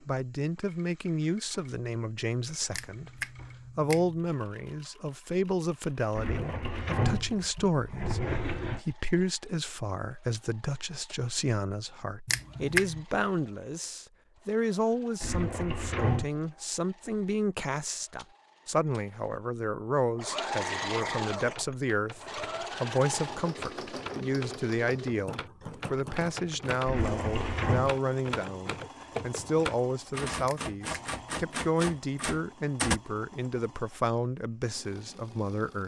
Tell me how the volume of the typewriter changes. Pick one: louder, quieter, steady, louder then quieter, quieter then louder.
louder.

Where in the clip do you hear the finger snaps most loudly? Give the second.
13 s.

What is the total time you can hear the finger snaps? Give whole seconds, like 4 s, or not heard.
3 s.